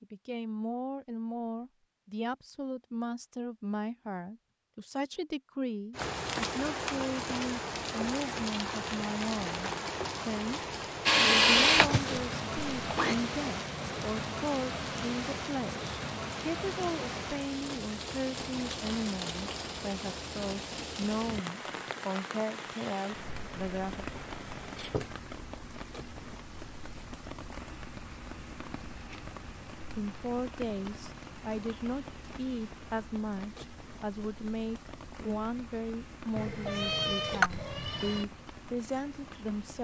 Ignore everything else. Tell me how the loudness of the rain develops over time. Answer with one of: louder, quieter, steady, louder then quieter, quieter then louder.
quieter.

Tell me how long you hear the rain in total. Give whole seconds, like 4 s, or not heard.
34 s.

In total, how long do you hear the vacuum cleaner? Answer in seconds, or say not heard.
2 s.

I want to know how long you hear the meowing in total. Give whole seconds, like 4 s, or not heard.
2 s.